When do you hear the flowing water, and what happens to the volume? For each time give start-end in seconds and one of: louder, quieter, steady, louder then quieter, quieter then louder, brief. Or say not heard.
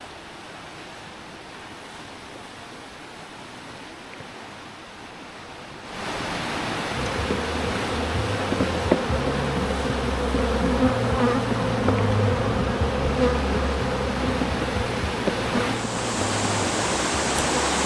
0.0-17.8 louder.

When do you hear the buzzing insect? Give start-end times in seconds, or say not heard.
7.0-17.8.